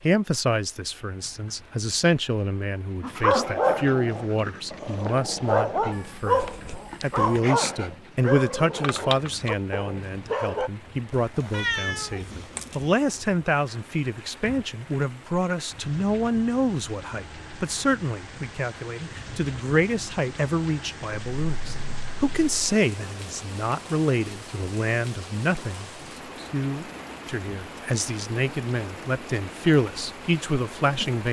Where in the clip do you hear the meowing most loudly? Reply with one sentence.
The loudest moment of the meowing is at 12 seconds.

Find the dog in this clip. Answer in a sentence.
The dog can be heard from 3.0 to 10.7 s.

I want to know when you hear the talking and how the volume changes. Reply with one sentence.
You can hear the talking from 0.0 to 31.2 s, at a steady volume.